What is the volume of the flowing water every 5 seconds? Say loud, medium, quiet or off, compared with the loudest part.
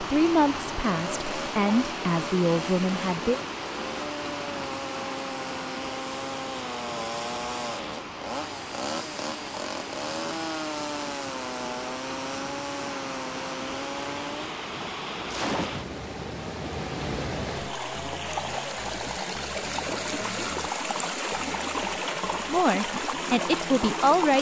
loud, medium, medium, loud, loud.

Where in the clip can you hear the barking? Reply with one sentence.
The barking can't be heard in this clip.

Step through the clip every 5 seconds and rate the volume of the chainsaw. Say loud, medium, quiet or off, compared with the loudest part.
loud, loud, loud, loud, medium.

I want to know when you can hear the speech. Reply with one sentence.
The speech can be heard from 0.0 to 3.4 s and from 22.4 to 24.3 s.